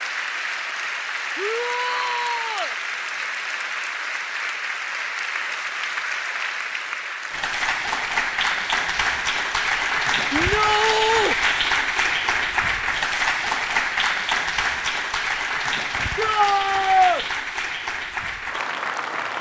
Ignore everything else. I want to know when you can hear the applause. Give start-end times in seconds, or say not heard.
0.0-19.3.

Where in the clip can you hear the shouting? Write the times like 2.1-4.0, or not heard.
1.4-2.8, 10.3-11.3, 16.1-17.2.